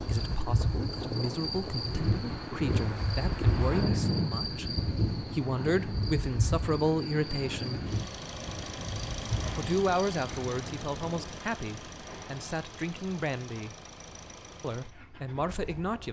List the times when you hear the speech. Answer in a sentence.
You can hear the speech from 0.1 to 7.8 s, from 9.6 to 13.8 s and from 14.6 to 16.0 s.